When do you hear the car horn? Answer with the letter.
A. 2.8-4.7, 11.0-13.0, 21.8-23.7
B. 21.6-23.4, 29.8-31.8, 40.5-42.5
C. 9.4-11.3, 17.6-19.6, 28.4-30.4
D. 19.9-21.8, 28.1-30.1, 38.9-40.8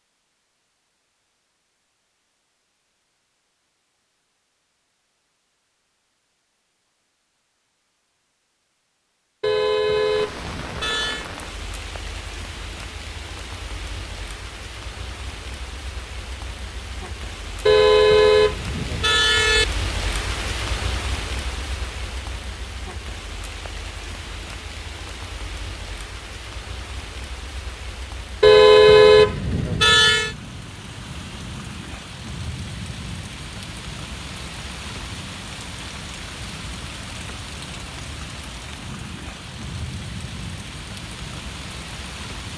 C.